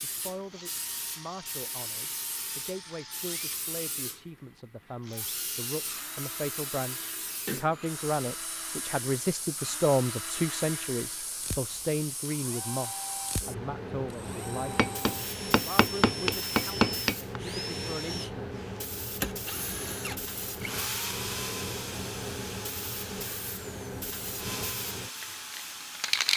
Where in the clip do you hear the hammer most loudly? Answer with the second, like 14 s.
17 s.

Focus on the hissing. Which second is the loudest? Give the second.
26 s.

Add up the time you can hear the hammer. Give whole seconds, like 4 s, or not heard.
3 s.